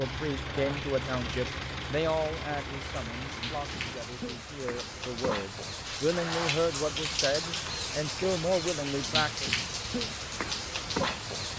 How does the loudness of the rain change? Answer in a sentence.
The loudness of the rain goes up.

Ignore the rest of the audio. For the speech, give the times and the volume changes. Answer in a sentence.
You can hear the speech from 0.0 to 9.5 s, getting quieter then louder.